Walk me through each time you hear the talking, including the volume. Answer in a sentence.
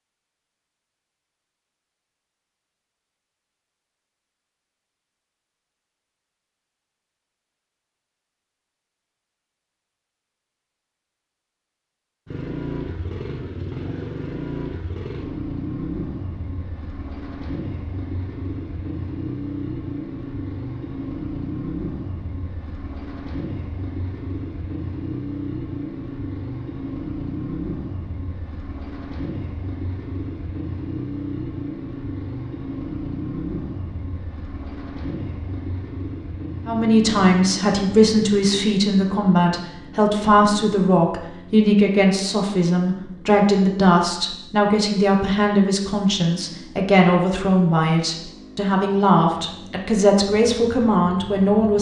The talking can be heard from 36.6 to 51.7 s, at a steady volume.